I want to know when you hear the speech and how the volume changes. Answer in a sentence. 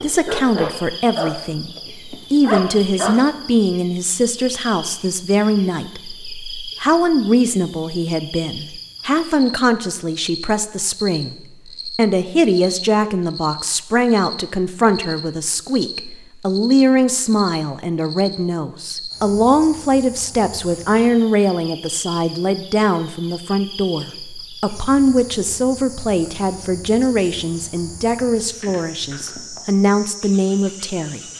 The speech can be heard from 0.0 to 31.2 s, at a steady volume.